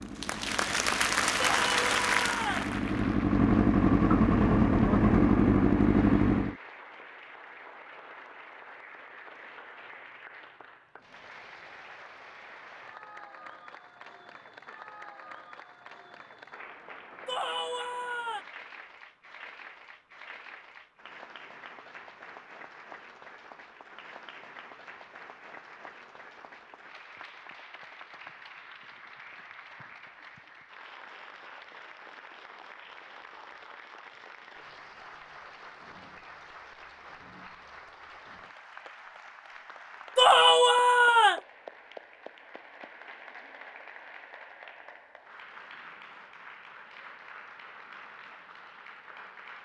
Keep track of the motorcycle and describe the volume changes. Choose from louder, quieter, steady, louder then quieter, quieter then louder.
louder.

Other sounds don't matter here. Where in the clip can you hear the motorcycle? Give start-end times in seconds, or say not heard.
0.0-6.5.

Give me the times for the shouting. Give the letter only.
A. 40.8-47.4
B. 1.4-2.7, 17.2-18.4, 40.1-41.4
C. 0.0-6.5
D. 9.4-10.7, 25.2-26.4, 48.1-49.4
B.